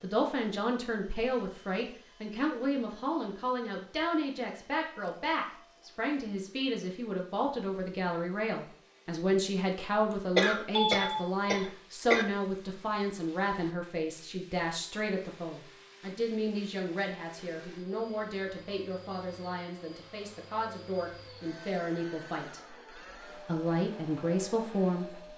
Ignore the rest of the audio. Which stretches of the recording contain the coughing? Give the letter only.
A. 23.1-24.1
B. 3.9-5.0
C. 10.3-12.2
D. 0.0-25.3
C.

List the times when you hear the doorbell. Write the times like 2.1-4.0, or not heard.
10.1-11.2.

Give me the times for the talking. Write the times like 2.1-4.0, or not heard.
0.0-25.3.